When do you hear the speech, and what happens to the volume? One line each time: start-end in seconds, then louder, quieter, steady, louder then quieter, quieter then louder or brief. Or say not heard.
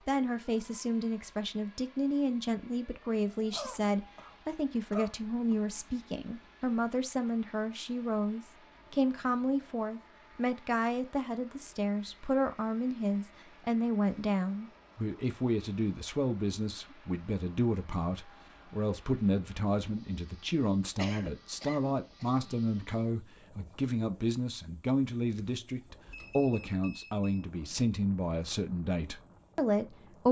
0.1-30.2 steady.